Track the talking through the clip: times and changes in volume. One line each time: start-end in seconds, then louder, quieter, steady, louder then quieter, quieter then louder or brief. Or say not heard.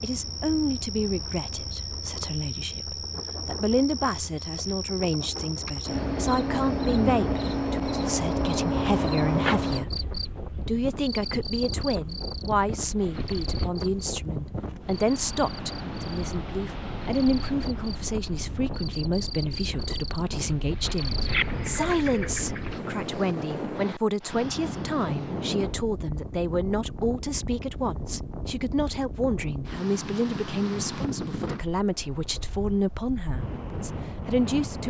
0.0-34.8 steady.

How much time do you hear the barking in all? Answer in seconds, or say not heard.
not heard.